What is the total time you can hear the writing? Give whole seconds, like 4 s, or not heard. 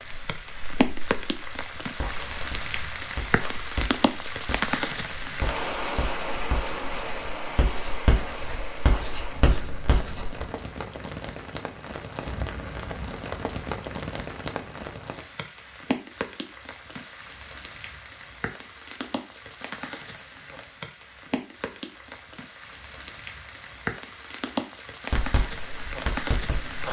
12 s.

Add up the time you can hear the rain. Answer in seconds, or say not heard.
27 s.